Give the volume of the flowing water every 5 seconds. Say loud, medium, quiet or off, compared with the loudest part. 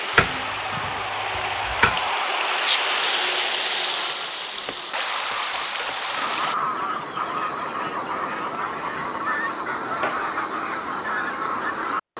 loud, loud, off.